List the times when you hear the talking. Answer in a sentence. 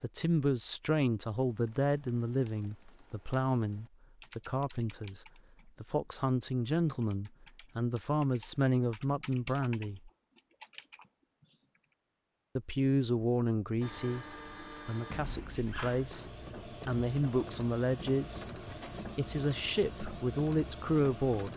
You can hear the talking from 0.0 to 10.1 s, from 12.6 to 14.2 s, from 14.8 to 18.4 s and from 19.0 to 21.5 s.